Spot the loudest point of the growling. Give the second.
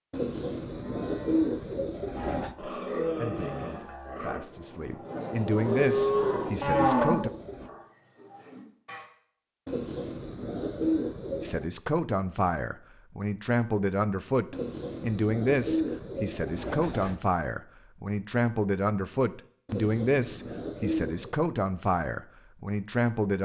3 s.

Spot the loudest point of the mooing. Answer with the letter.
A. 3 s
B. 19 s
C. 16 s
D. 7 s
D.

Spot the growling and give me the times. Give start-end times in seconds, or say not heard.
2.5-4.4.